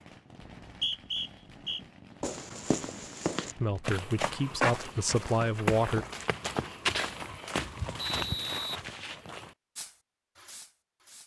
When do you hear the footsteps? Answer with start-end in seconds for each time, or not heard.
2.2-9.6.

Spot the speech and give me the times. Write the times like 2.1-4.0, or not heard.
3.5-6.0.